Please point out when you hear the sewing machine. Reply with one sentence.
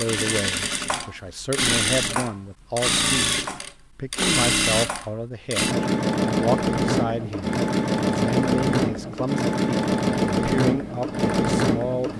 You can hear the sewing machine from 0.0 to 12.1 s.